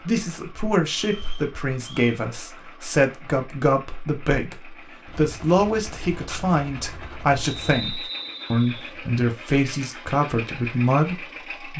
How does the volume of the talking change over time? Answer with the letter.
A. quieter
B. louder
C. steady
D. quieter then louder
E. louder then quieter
C.